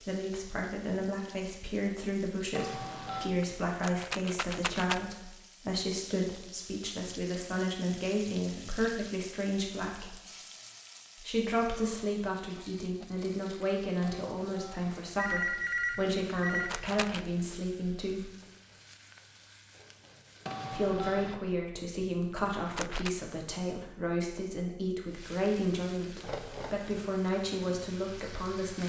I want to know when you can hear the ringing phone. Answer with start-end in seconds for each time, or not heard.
2.5-3.3, 14.0-16.7, 20.4-21.4.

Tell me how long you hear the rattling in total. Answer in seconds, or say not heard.
4 s.